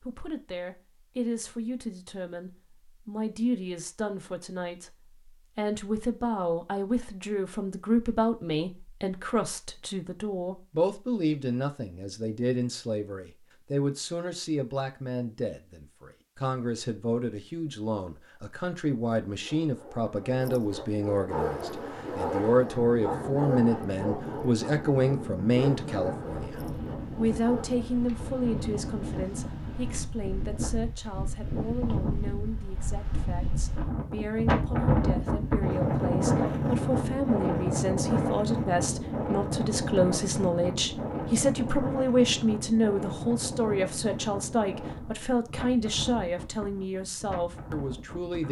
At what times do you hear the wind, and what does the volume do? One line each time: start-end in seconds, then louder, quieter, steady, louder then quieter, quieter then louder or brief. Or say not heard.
21.3-48.4 louder then quieter.